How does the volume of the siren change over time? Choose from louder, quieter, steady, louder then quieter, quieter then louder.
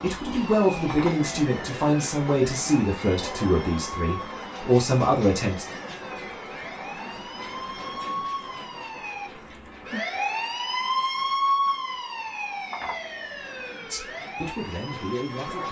louder then quieter.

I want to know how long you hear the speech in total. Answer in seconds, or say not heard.
7 s.